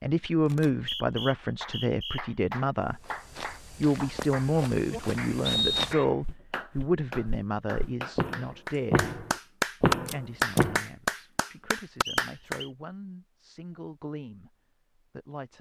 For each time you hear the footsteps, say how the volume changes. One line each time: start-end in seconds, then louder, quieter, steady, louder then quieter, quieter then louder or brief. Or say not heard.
2.9-10.8 quieter then louder.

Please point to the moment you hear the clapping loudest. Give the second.
10 s.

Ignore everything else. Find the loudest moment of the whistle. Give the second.
6 s.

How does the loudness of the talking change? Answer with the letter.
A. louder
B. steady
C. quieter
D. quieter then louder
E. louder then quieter
C.